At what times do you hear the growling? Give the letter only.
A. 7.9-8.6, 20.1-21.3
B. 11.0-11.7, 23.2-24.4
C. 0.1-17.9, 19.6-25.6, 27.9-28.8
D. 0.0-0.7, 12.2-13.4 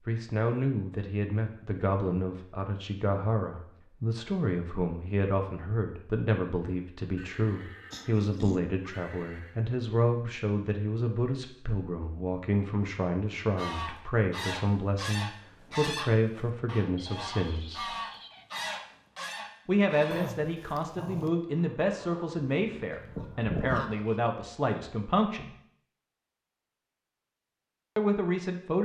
A.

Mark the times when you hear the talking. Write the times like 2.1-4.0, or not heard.
0.1-17.9, 19.6-25.6, 27.9-28.8.